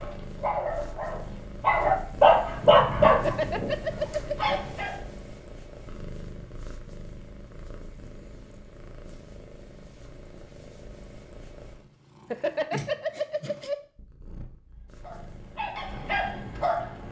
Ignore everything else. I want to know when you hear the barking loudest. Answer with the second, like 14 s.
2 s.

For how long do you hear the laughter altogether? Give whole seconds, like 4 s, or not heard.
3 s.